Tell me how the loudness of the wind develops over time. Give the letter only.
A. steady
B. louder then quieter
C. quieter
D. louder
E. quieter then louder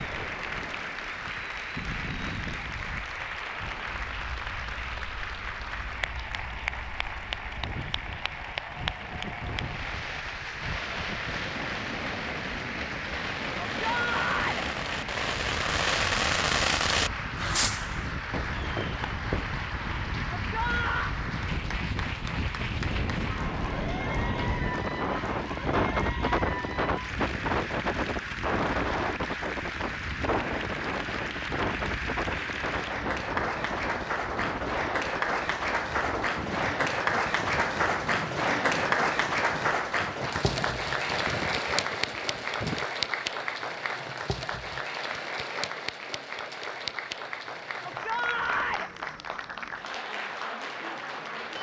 B.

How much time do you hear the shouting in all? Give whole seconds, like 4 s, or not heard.
3 s.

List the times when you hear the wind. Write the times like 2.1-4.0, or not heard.
0.0-42.9.